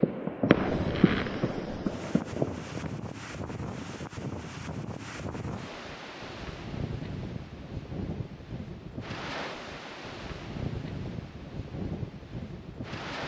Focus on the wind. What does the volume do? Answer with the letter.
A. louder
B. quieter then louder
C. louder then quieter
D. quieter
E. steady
E.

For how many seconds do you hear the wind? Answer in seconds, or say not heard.
13 s.